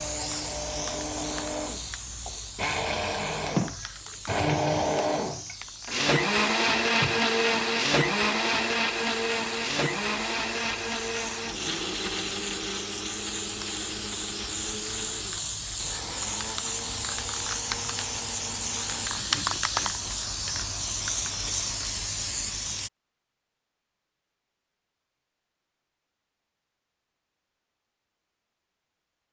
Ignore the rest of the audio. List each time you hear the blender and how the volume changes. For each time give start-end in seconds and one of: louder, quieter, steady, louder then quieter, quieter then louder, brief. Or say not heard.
0.0-19.2 louder then quieter.